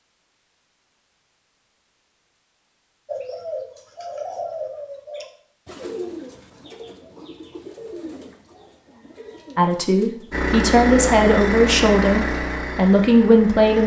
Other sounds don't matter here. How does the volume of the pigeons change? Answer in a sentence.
The loudness of the pigeons goes down.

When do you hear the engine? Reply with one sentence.
The engine can be heard from 10.3 to 13.8 s.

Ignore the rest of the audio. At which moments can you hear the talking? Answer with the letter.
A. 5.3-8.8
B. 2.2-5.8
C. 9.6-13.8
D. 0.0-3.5
C.